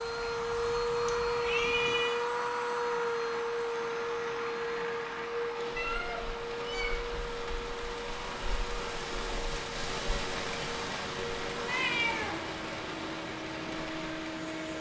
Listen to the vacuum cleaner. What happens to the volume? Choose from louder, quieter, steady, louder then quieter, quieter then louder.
quieter.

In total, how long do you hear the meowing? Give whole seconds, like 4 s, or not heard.
3 s.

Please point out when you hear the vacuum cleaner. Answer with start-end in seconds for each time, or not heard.
0.0-14.7.